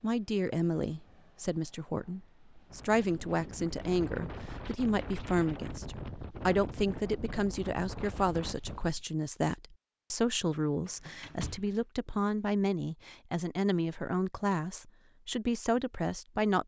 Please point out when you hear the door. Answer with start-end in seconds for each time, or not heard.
10.8-11.7.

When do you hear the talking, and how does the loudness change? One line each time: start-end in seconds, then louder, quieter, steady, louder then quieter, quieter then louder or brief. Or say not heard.
0.0-16.6 steady.